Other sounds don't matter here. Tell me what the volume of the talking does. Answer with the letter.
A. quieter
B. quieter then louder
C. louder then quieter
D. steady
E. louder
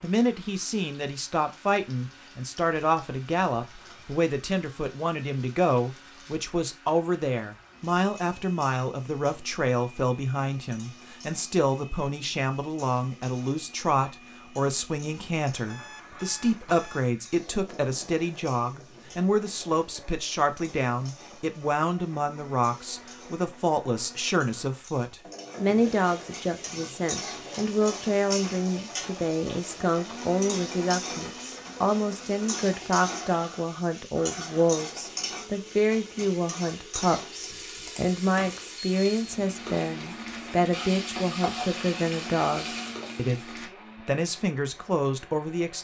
D.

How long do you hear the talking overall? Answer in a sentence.
The talking can be heard for 46 seconds in total.